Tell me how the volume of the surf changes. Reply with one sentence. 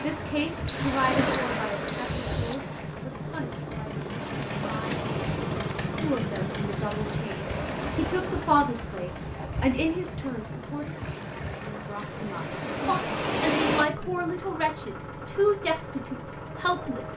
The volume of the surf goes down, then up.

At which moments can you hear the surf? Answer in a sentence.
You can hear the surf from 0.0 to 13.8 s.